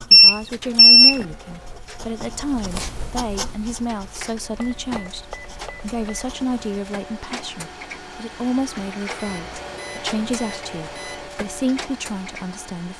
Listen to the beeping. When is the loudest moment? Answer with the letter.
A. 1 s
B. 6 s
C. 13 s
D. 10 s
A.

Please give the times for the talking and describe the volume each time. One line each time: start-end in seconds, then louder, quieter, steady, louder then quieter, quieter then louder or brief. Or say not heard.
0.1-12.9 steady.